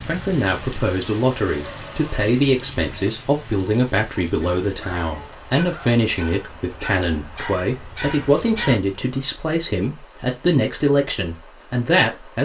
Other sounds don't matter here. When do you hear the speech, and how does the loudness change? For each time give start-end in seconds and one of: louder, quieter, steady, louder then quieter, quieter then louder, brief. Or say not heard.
0.1-12.3 steady.